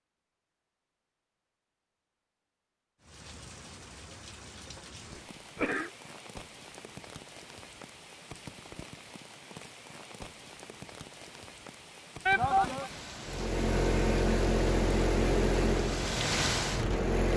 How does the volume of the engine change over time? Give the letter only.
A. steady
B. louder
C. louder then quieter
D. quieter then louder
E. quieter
E.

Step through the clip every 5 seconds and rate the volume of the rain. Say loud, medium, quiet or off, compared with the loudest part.
quiet, quiet, medium, loud.